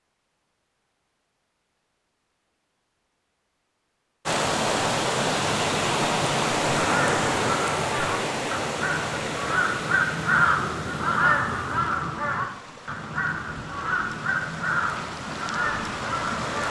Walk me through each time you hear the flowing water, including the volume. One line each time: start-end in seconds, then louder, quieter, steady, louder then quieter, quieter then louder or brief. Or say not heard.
4.2-16.6 quieter then louder.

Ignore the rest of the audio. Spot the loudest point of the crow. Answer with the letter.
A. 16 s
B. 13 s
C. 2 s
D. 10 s
D.